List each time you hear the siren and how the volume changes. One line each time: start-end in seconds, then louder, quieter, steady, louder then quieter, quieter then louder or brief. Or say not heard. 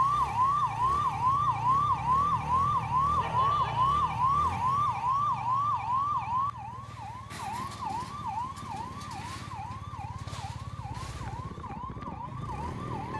0.0-13.1 quieter.